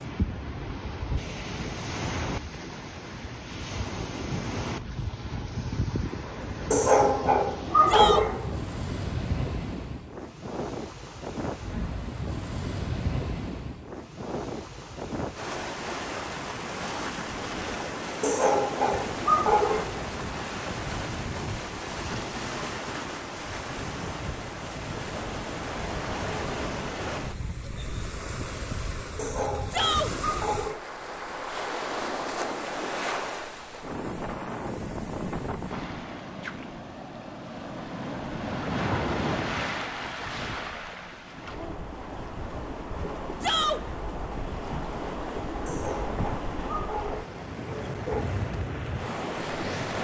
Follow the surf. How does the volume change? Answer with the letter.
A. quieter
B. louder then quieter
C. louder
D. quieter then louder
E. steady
E.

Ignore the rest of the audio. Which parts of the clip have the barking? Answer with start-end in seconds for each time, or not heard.
6.7-8.5, 18.2-20.0, 29.1-30.9, 45.6-48.2.